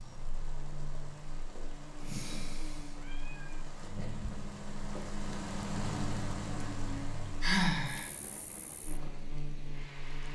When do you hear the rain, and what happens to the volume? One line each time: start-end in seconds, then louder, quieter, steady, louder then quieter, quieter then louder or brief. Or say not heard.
0.0-10.3 louder then quieter.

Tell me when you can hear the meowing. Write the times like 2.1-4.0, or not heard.
3.0-4.3.